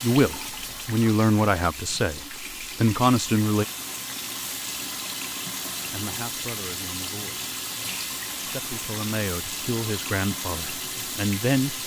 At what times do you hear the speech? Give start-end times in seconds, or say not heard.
0.0-3.6, 5.9-7.5, 8.4-11.8.